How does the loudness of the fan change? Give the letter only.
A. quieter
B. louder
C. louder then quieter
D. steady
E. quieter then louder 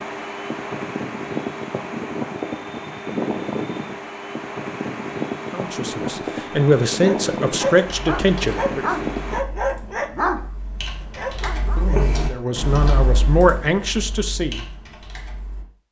D.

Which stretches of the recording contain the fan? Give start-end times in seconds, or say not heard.
0.0-9.4.